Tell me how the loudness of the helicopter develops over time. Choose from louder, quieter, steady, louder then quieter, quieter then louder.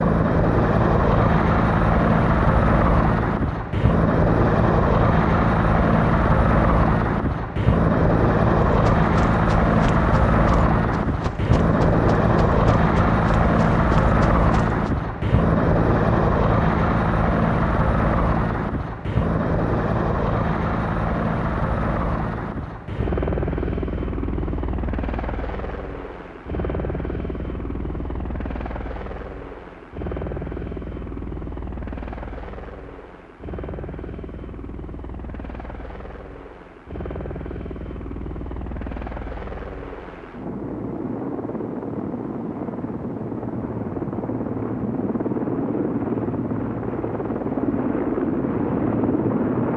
quieter then louder.